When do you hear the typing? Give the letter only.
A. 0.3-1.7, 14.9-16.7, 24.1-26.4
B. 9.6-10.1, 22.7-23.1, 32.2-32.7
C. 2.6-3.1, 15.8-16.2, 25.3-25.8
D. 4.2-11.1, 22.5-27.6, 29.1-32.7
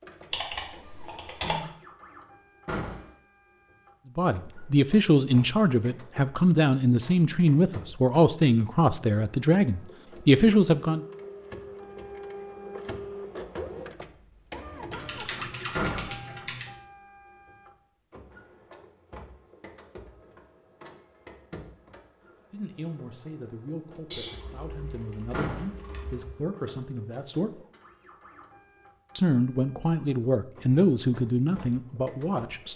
A.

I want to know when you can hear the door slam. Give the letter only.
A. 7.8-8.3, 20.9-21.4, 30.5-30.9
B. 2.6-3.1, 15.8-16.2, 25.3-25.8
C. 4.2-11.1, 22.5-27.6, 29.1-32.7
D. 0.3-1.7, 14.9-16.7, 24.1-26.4
B.